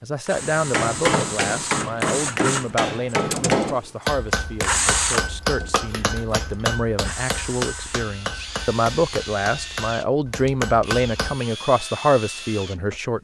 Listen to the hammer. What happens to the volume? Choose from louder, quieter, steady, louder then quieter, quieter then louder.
quieter.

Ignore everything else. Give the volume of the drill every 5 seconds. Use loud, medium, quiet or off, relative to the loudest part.
loud, medium, medium.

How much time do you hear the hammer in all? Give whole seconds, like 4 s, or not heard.
11 s.